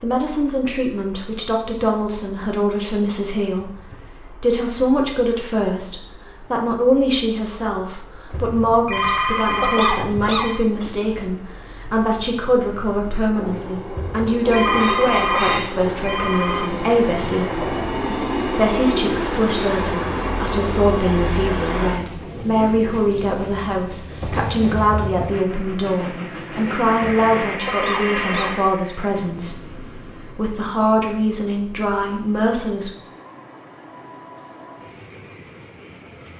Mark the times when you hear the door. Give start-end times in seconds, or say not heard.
not heard.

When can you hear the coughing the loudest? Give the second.
10 s.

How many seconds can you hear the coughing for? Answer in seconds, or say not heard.
2 s.